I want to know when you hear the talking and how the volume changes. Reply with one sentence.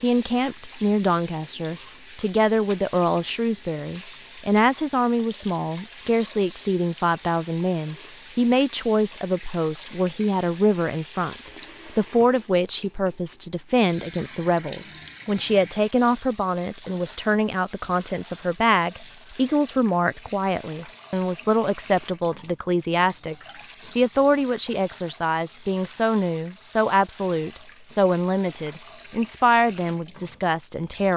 The talking can be heard from 0.0 to 31.1 s, at a steady volume.